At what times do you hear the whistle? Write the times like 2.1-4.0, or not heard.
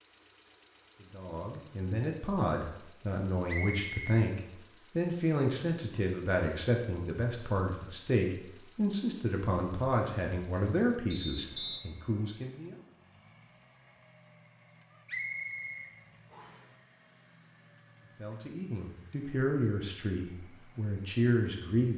3.5-4.2, 11.1-11.8, 15.1-16.6.